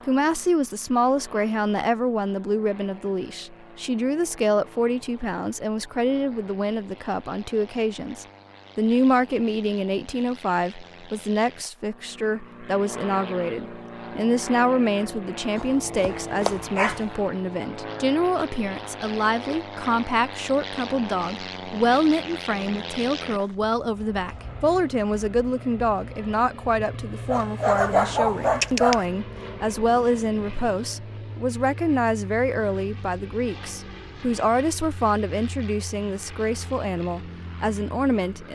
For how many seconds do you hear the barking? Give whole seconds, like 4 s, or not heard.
3 s.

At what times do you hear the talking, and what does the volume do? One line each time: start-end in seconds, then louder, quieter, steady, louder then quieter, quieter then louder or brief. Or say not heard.
0.1-38.4 steady.